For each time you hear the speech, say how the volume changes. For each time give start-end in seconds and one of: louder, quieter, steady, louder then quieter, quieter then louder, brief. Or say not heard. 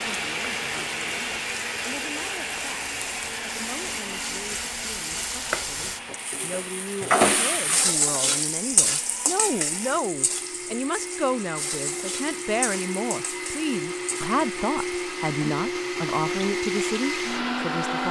0.0-18.0 louder.